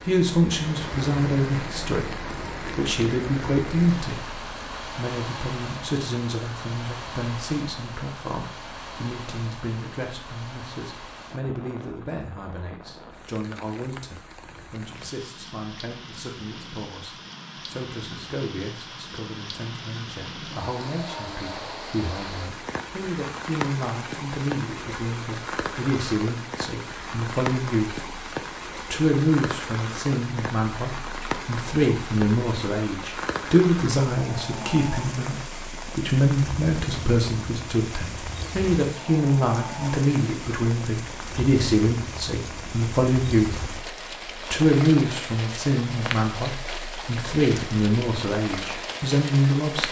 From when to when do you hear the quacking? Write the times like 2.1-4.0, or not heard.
not heard.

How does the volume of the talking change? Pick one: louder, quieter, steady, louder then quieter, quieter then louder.
quieter then louder.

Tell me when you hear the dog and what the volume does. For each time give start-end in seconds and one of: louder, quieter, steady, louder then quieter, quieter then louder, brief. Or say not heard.
not heard.